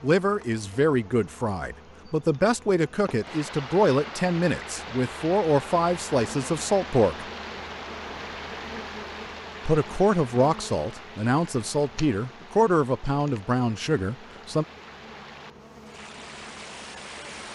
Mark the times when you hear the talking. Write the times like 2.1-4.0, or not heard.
0.0-7.2, 9.7-14.7.